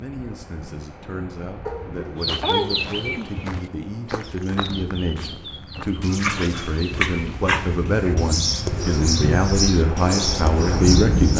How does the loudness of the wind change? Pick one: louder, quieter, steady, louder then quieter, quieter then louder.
louder.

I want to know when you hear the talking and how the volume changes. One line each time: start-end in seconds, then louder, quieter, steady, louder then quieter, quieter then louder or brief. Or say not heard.
0.0-11.3 louder.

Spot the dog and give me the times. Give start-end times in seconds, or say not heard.
1.6-3.0, 6.0-8.1.